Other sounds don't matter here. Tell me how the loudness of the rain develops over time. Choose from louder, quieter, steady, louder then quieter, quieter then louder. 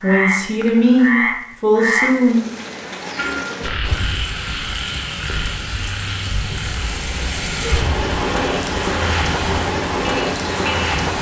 louder.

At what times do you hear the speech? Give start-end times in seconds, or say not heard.
0.0-2.4.